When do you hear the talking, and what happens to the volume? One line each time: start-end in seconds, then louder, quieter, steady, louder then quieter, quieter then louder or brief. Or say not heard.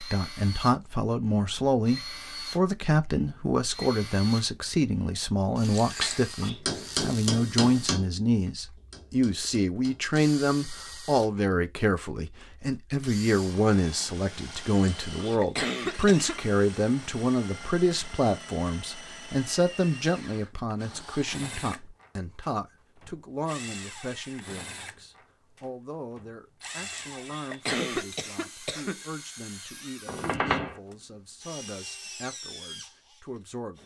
0.0-33.8 quieter.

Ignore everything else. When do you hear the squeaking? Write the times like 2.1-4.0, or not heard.
6.8-7.3, 30.1-30.8.